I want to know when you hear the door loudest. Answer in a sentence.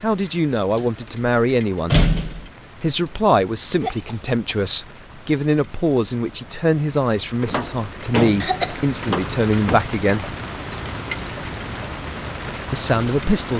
The volume of the door peaks at 2 seconds.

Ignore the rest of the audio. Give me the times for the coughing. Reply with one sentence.
You can hear the coughing from 3.8 to 4.3 s and from 8.4 to 8.8 s.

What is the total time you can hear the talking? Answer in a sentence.
You can hear the talking for 10 seconds altogether.